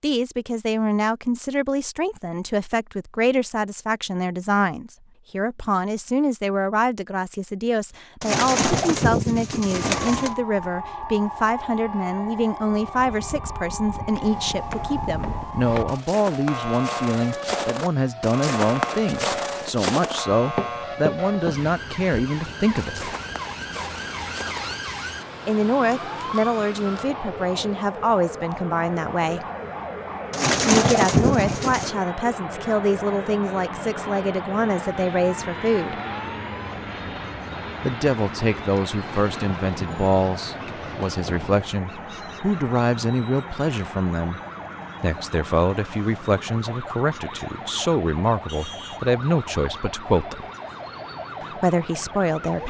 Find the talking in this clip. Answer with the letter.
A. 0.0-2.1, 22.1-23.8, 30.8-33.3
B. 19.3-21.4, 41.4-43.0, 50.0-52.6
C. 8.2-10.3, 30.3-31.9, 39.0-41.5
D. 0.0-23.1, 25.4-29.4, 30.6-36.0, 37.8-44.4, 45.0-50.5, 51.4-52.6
D.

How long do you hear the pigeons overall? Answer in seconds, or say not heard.
6 s.